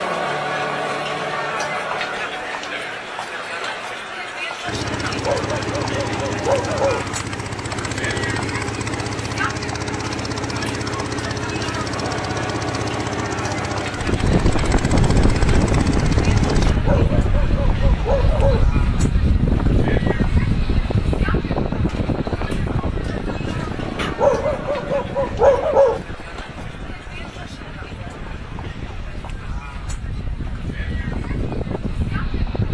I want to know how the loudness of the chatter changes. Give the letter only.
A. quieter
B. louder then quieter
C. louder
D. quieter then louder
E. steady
A.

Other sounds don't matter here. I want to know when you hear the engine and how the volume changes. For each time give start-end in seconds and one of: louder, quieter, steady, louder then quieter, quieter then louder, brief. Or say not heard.
4.7-16.8 steady.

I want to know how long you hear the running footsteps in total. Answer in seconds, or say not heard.
not heard.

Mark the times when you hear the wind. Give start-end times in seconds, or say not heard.
13.9-32.6.